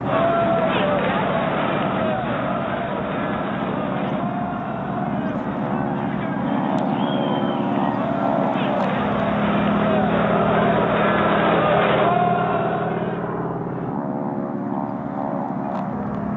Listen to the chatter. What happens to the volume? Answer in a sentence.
The loudness of the chatter goes down, then up.